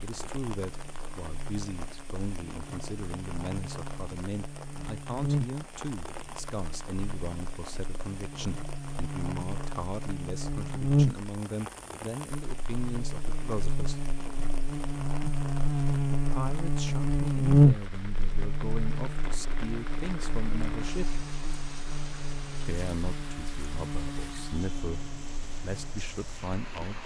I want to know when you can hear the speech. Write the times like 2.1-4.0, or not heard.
0.0-14.0, 16.1-21.2, 22.6-27.0.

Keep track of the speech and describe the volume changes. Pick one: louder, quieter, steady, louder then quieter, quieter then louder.
steady.